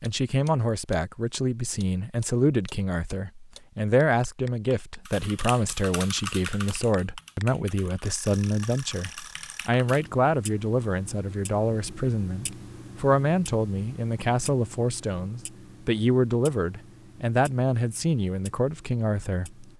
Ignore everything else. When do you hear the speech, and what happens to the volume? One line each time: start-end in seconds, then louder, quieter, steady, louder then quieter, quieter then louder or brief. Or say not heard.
0.0-19.7 steady.